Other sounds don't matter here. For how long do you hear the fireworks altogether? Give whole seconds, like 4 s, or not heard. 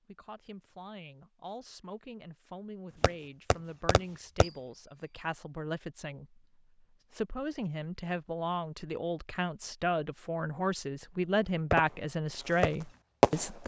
4 s.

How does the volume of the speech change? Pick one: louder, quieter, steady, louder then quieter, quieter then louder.
louder.